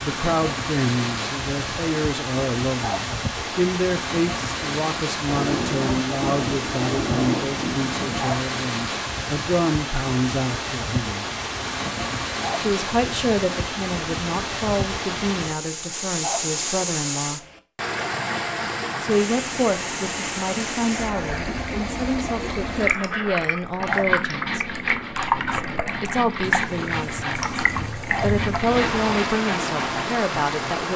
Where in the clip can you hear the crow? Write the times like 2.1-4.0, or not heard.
not heard.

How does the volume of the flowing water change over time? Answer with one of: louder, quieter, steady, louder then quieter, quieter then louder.
steady.